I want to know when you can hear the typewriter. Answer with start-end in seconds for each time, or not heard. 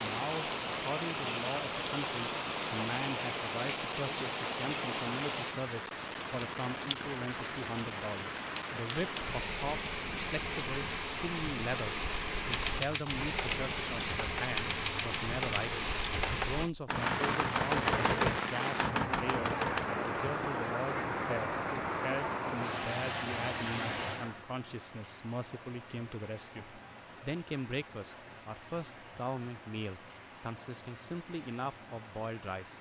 12.5-19.9.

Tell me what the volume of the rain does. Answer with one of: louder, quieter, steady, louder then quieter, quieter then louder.
quieter.